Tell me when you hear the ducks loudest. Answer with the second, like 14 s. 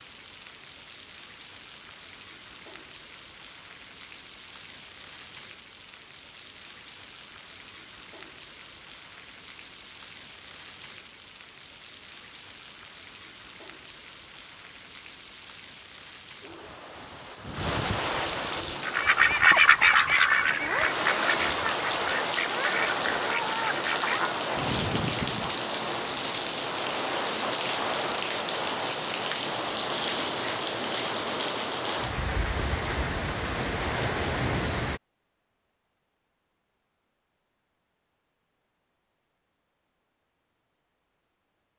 20 s.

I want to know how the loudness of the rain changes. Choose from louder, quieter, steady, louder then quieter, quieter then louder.
louder.